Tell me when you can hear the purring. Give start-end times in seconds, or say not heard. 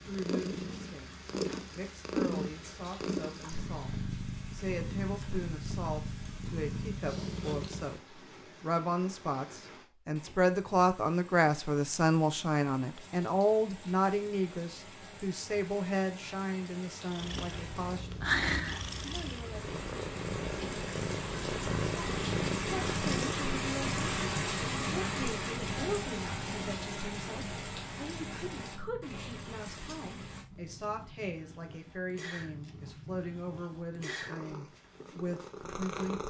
0.0-8.0, 17.1-36.2.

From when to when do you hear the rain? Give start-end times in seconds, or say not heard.
0.0-30.4.